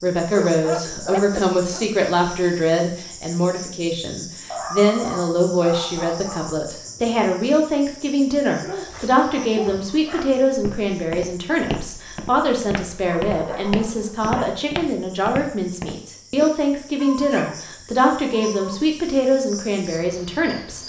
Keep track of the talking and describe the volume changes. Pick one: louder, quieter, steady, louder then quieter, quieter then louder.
steady.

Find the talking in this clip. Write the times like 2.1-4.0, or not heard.
0.0-20.8.